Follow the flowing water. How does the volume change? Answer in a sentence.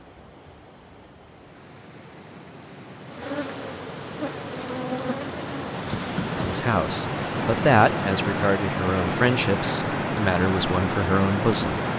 The volume of the flowing water goes up.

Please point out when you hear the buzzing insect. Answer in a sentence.
The buzzing insect can be heard from 3.0 to 6.8 s.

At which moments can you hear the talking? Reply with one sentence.
The talking can be heard from 6.3 to 11.8 s.